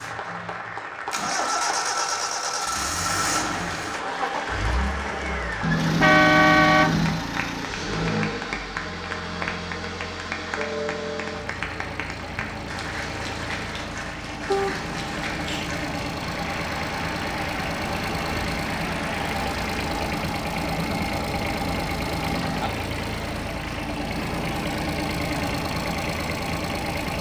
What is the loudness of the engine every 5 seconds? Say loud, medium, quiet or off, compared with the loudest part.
loud, loud, medium, loud, loud, loud.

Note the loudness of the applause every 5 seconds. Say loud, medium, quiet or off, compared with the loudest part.
loud, loud, loud, loud, off, off.